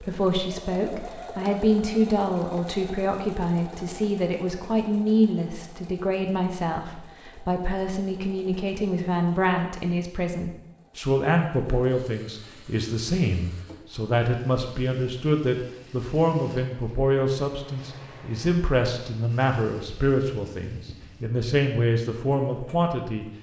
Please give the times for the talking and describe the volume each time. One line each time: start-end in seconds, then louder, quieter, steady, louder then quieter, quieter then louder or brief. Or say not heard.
0.0-23.2 steady.